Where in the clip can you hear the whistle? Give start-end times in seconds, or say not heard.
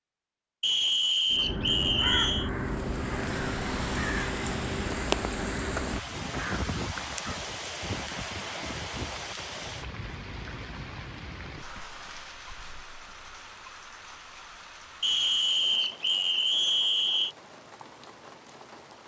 0.6-2.5, 15.0-17.4.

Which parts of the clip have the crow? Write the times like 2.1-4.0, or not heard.
1.3-7.2.